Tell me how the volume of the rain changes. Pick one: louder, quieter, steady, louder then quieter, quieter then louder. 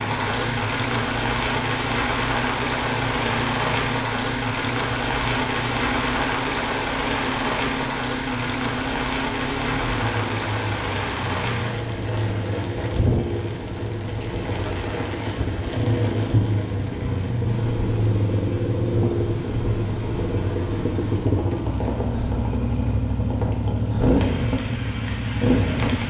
quieter.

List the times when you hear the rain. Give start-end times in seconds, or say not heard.
0.0-26.0.